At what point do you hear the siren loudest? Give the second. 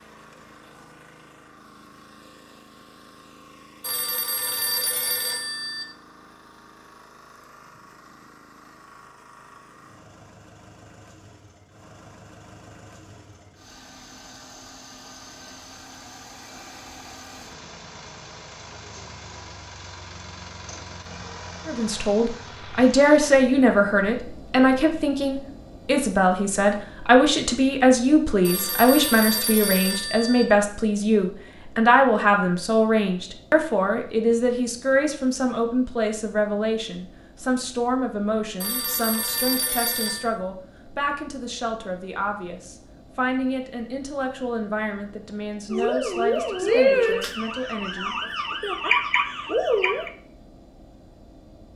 47 s.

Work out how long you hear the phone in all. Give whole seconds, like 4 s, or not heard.
6 s.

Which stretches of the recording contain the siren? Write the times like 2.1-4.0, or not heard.
45.7-50.1.